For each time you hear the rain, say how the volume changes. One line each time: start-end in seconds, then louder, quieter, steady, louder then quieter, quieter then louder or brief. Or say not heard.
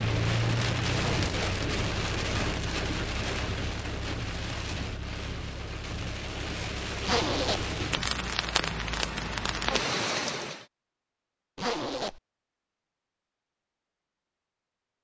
0.0-10.7 quieter then louder.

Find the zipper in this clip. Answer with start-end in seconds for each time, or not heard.
0.9-1.6, 7.0-7.7, 11.6-12.2.